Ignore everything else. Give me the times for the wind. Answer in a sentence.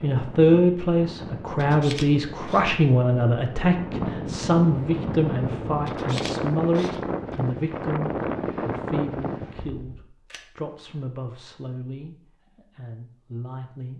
The wind can be heard from 0.0 to 10.1 s.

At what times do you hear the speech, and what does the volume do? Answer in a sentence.
You can hear the speech from 0.0 to 13.9 s, getting quieter.